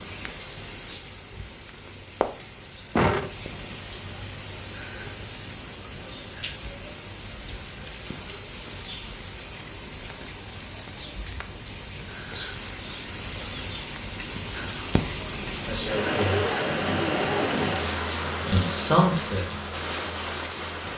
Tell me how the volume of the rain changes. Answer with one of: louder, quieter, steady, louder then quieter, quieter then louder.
louder.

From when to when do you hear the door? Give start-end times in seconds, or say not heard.
3.0-3.8.